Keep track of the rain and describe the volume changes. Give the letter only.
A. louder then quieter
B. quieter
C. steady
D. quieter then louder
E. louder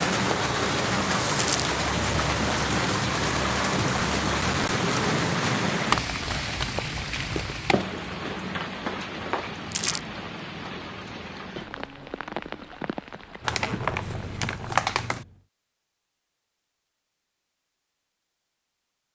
B.